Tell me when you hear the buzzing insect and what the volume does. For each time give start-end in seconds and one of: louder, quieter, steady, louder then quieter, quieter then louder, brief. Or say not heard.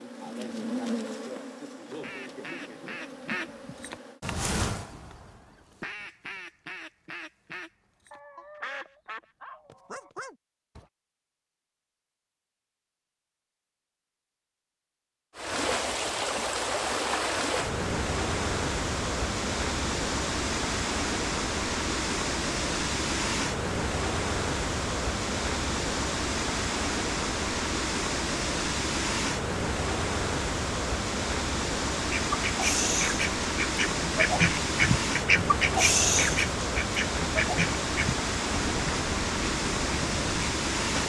0.0-4.2 quieter.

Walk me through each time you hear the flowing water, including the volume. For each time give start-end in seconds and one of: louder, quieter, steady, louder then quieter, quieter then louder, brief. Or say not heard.
15.3-41.0 steady.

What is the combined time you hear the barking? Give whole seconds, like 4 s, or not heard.
2 s.